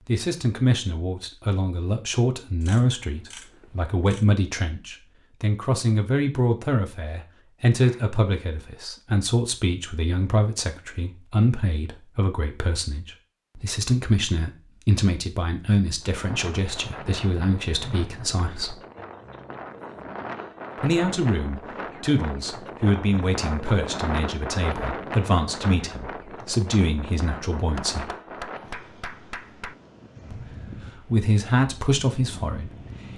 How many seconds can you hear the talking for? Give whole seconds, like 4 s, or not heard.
29 s.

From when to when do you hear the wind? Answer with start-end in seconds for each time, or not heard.
16.0-33.1.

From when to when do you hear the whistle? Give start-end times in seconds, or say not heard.
not heard.